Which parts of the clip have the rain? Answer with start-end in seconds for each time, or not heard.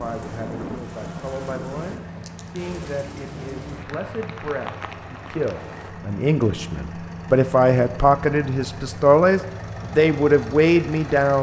0.0-5.9.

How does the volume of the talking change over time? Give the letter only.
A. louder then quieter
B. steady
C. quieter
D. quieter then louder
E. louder
E.